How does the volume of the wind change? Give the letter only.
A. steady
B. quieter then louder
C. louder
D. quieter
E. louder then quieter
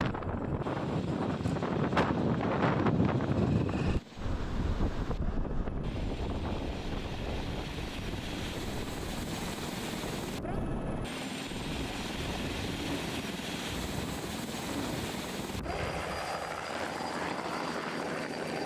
D.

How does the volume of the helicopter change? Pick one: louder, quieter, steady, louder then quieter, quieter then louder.
louder.